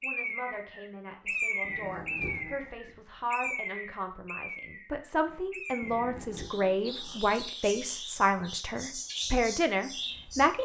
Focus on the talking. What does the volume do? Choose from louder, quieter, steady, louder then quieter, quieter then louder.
louder.